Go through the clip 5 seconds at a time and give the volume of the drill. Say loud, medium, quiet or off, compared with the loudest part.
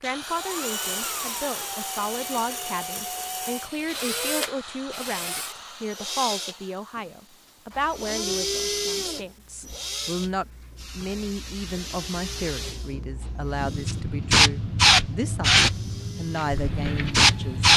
loud, loud, medium, quiet.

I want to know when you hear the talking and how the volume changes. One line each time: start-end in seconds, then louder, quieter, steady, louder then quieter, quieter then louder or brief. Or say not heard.
0.0-17.7 steady.